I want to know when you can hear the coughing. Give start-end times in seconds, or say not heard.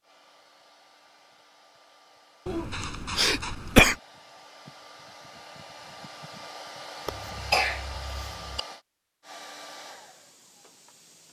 2.5-4.0, 7.0-8.6.